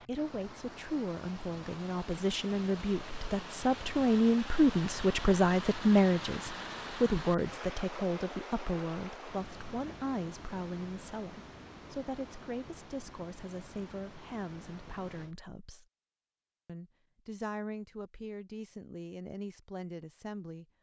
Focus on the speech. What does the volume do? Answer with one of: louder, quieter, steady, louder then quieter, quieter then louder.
louder then quieter.